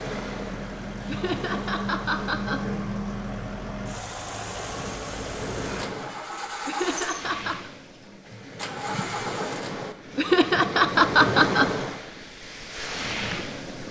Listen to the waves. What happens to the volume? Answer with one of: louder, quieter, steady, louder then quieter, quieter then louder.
louder.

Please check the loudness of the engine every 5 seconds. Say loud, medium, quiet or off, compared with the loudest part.
loud, loud, off.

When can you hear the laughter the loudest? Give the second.
11 s.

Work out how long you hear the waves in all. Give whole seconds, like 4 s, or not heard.
14 s.